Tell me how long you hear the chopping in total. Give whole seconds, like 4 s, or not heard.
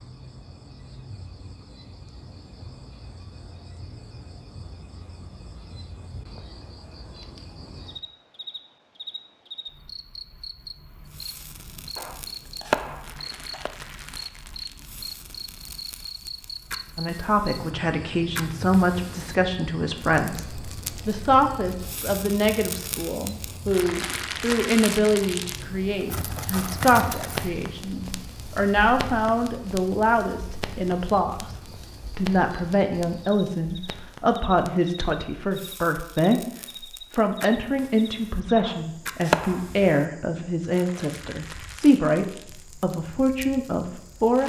3 s.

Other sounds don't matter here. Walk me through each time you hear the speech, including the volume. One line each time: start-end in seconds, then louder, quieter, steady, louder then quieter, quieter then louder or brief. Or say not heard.
16.9-44.4 steady.